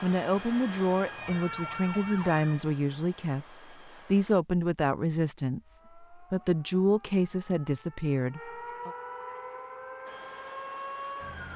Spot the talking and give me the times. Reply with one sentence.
You can hear the talking from 0.0 to 8.9 s.